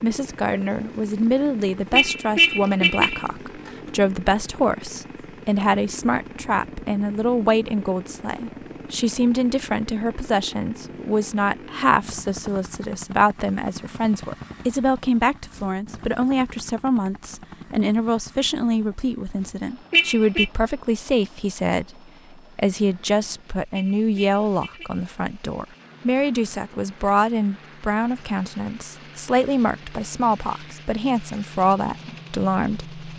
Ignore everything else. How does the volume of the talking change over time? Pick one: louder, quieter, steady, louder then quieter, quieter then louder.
steady.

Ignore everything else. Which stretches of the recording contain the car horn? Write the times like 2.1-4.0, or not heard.
1.9-3.2, 19.9-20.4, 23.7-25.0.